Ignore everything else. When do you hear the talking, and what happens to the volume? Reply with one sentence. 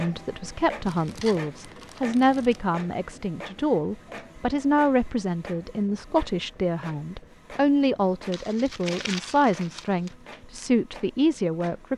You can hear the talking from 0.0 to 11.9 s, at a steady volume.